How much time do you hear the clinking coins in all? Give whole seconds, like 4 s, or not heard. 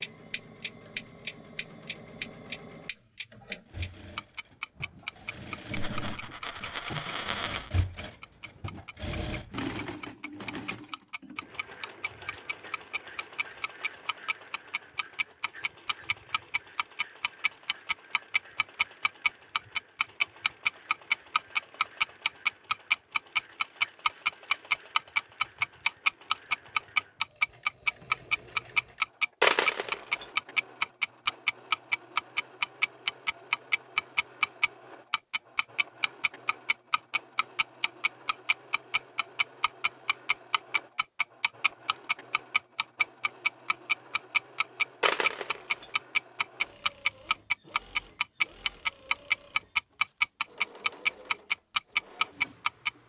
4 s.